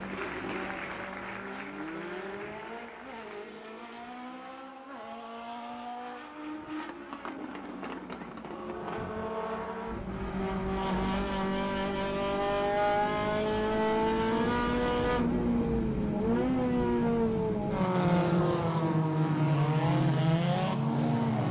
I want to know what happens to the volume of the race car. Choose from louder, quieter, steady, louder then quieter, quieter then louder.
louder.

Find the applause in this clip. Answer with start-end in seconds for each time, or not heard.
0.0-3.5.